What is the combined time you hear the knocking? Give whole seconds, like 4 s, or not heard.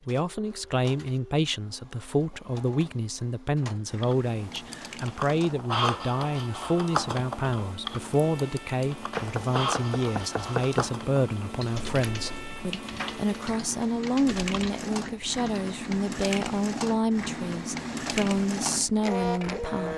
2 s.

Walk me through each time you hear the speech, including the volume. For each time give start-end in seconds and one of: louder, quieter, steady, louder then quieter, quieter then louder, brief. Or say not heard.
0.1-19.9 steady.